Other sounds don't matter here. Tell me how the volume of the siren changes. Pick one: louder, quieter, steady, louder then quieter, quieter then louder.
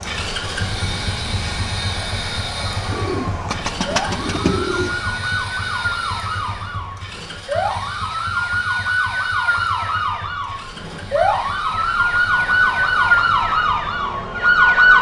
louder.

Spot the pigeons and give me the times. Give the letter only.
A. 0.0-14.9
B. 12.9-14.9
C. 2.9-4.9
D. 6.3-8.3
C.